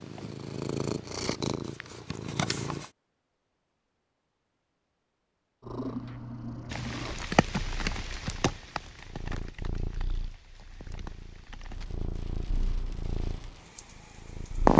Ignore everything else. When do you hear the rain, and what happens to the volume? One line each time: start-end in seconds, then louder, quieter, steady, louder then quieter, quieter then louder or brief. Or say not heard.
6.7-14.7 quieter.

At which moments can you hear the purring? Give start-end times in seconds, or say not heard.
0.0-2.9, 5.6-14.7.